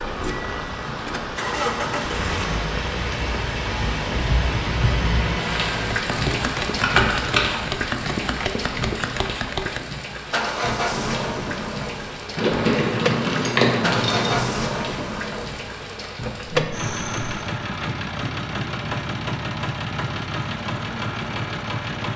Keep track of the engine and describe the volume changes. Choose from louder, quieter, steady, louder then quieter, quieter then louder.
steady.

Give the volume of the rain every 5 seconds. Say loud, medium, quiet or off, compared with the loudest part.
loud, loud, medium, medium, off.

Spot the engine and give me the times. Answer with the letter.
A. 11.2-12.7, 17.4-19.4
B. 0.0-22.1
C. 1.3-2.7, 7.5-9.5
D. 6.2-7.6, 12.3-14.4
B.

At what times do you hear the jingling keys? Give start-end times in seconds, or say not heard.
6.2-7.6, 12.3-14.4.